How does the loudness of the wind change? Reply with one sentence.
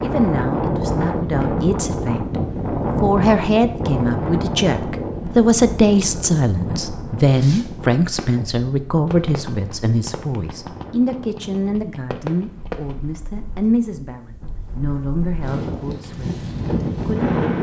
The loudness of the wind goes down, then up.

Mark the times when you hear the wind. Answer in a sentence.
The wind can be heard from 0.0 to 17.5 s.